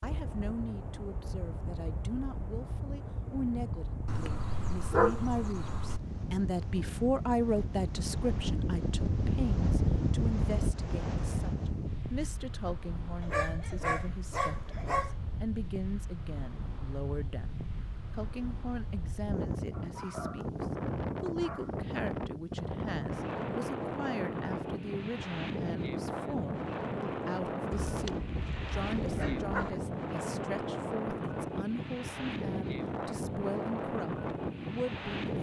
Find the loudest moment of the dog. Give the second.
5 s.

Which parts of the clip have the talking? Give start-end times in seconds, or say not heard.
0.0-35.3.